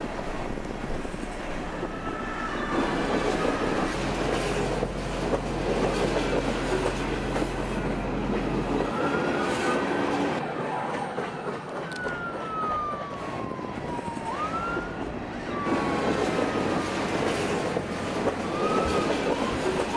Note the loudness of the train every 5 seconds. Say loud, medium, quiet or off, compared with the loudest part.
loud, loud, medium, loud.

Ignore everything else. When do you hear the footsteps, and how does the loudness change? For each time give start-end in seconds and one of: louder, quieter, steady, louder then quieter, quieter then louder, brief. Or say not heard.
not heard.